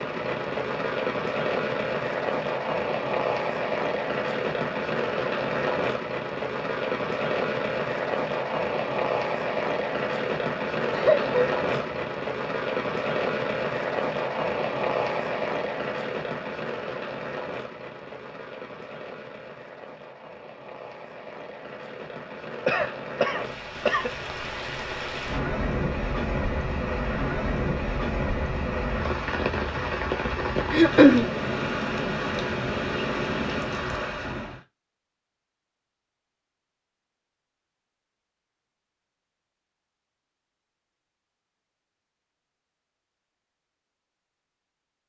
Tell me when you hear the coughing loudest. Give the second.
31 s.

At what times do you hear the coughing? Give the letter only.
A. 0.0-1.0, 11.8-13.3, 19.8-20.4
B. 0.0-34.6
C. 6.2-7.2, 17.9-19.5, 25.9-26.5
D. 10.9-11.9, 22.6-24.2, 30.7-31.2
D.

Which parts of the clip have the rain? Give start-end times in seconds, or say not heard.
0.0-34.6.